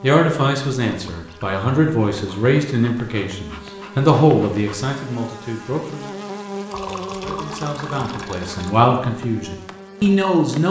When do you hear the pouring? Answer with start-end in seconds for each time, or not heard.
0.9-1.6, 6.7-8.7.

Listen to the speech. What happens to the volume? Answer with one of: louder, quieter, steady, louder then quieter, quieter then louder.
quieter then louder.